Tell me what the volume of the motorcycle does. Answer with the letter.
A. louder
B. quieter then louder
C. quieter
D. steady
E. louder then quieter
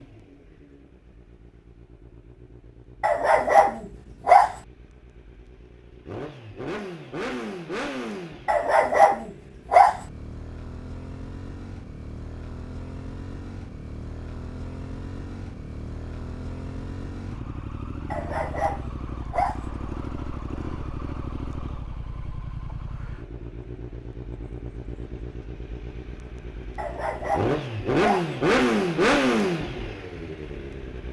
A.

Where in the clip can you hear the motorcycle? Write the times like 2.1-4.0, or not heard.
0.0-31.0.